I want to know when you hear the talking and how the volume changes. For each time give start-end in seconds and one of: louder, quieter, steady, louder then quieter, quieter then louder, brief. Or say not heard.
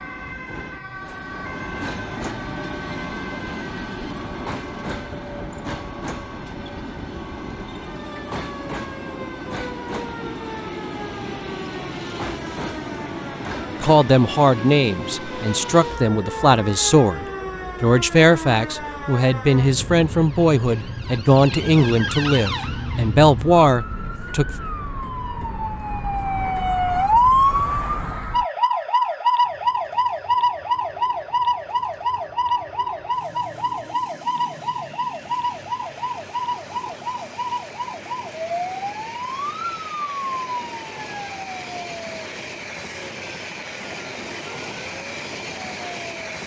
13.7-24.4 steady.